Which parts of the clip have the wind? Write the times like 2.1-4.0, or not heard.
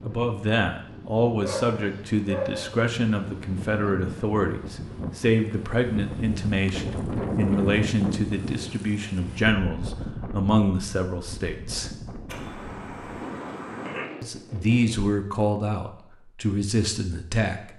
0.0-15.2.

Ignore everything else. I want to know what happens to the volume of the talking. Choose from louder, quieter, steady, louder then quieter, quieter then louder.
steady.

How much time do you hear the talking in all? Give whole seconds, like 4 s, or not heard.
15 s.